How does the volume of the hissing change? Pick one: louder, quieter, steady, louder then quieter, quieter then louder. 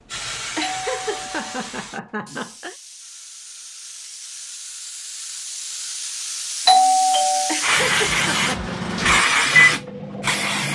quieter then louder.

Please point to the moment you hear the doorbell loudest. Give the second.
7 s.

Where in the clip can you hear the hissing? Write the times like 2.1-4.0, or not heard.
0.1-10.6.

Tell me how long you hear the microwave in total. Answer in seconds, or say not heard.
3 s.